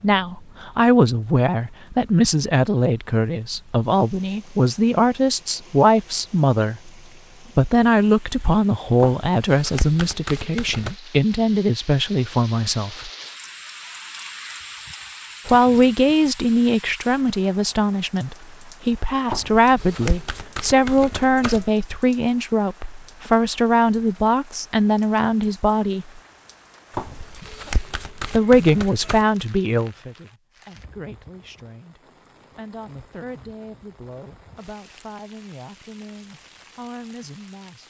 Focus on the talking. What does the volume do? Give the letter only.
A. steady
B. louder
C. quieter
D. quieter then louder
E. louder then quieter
C.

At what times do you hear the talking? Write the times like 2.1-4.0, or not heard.
0.0-6.9, 7.5-13.1, 15.4-26.2, 28.3-37.8.